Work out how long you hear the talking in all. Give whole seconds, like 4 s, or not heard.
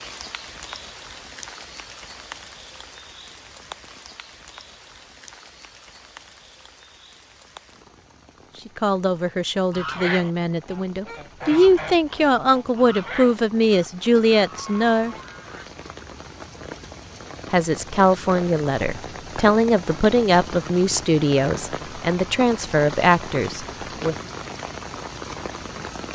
13 s.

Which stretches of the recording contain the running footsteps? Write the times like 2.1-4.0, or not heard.
not heard.